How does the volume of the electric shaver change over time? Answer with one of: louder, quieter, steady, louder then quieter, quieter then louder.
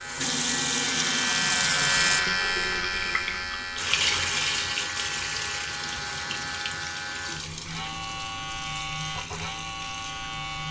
quieter.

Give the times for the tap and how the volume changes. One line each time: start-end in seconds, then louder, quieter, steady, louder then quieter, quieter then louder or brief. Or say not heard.
0.0-10.6 quieter.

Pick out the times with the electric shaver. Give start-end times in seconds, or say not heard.
0.0-10.6.